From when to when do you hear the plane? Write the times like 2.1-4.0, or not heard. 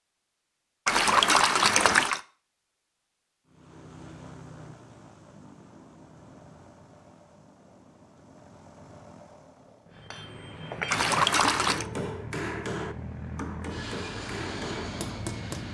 3.5-15.7.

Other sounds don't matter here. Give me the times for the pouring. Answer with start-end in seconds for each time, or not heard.
0.8-2.2, 10.9-11.8.